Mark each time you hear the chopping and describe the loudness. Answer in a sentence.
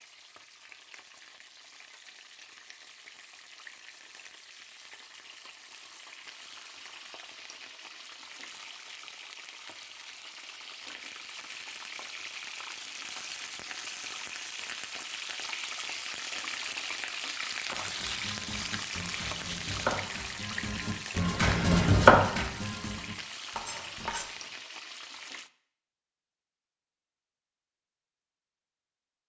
The chopping can be heard from 17.7 to 24.4 s, getting louder then quieter.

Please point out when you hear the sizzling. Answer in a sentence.
You can hear the sizzling from 0.0 to 25.5 s.